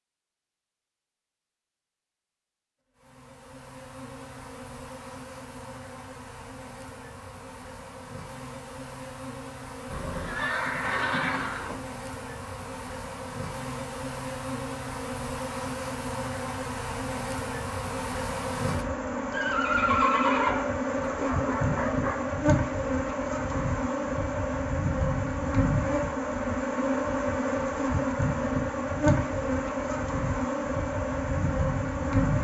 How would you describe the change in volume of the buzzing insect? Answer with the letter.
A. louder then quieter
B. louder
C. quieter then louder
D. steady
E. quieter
B.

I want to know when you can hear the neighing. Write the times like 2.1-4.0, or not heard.
9.9-11.8, 19.3-20.8.